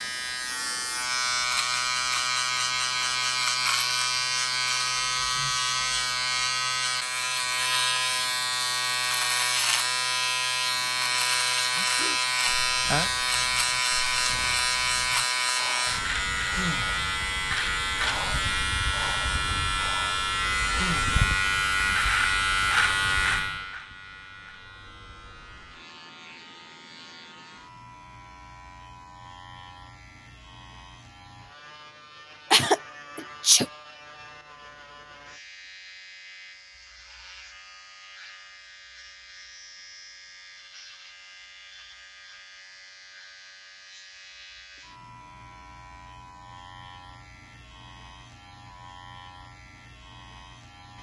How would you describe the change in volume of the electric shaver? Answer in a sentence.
The loudness of the electric shaver goes down.